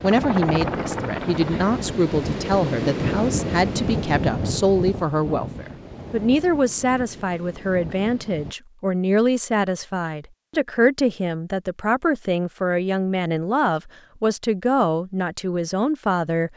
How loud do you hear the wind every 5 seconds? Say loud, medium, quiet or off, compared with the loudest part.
loud, medium, off, off.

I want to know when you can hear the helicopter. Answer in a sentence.
You can hear the helicopter from 0.0 to 1.7 s.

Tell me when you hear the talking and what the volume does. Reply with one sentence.
You can hear the talking from 0.0 to 16.5 s, at a steady volume.